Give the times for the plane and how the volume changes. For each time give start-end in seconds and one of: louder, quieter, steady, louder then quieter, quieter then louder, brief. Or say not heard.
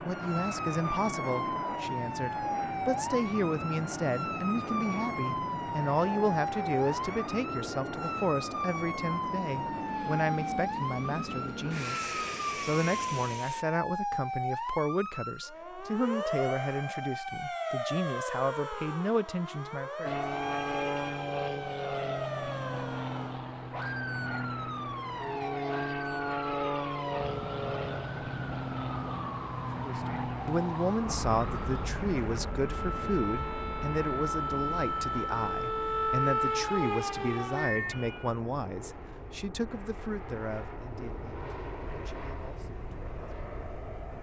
0.0-13.7 steady
20.1-44.1 quieter.